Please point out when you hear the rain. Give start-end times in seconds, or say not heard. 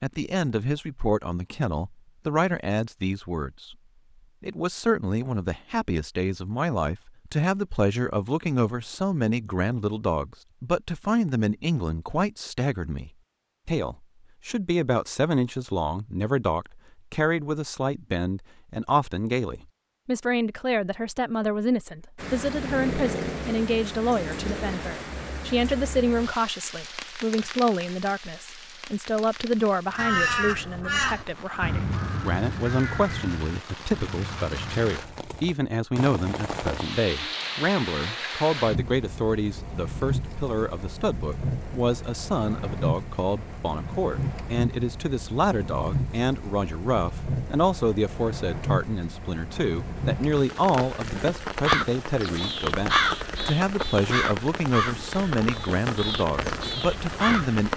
22.1-57.7.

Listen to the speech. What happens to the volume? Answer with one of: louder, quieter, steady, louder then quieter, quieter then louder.
steady.